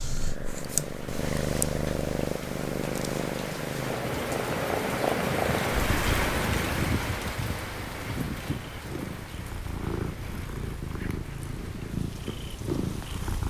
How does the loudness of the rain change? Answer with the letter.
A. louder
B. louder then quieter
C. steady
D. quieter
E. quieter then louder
B.